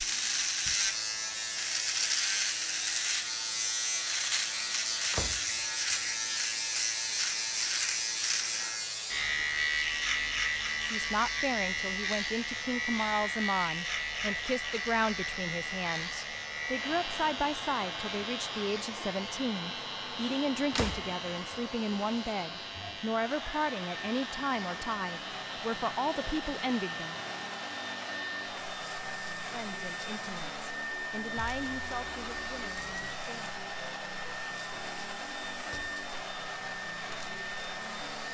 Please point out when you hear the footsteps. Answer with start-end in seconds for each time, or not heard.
not heard.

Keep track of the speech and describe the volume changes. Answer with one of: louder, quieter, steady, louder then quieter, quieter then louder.
quieter.